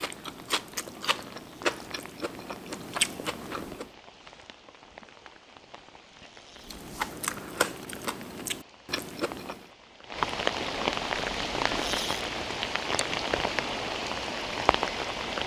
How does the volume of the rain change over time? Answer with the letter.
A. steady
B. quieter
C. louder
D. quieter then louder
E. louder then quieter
C.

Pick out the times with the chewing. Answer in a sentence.
The chewing can be heard from 0.0 to 3.9 s and from 6.7 to 9.7 s.